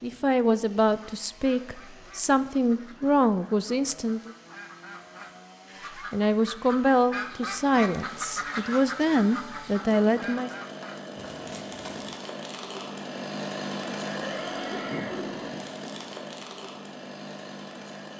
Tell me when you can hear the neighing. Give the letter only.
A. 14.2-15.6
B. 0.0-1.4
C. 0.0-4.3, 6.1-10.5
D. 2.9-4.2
A.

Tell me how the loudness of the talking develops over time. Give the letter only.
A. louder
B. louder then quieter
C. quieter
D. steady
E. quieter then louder
D.